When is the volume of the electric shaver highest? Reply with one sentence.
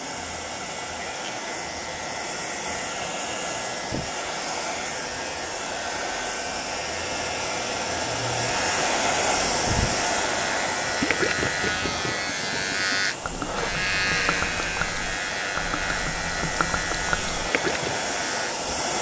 The loudest moment of the electric shaver is at 14 seconds.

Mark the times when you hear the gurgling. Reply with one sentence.
The gurgling can be heard from 10.6 to 17.9 s.